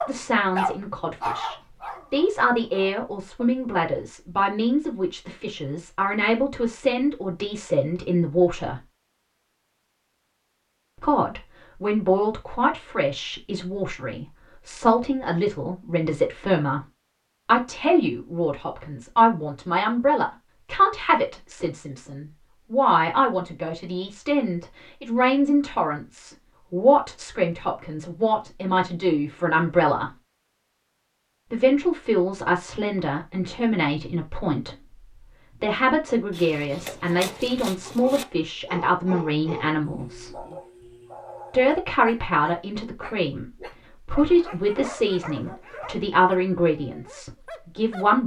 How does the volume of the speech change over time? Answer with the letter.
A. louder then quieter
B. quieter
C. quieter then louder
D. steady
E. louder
D.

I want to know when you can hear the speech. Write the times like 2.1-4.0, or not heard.
0.1-8.8, 11.0-16.8, 17.4-30.1, 31.5-40.5, 41.5-48.2.